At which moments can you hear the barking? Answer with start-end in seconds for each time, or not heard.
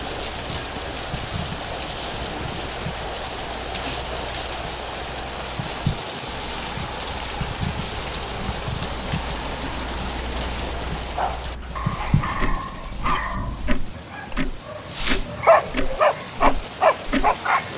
11.2-17.7.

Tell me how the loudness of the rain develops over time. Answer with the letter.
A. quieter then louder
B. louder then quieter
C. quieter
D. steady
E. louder
C.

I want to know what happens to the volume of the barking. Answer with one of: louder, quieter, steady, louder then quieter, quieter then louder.
quieter then louder.